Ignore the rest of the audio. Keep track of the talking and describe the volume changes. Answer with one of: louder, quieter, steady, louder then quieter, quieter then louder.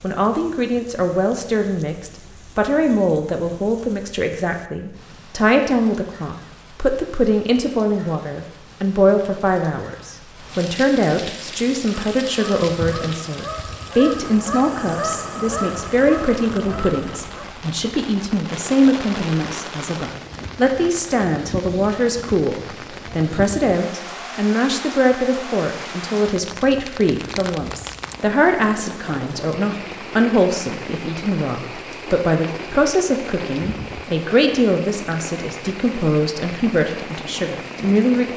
steady.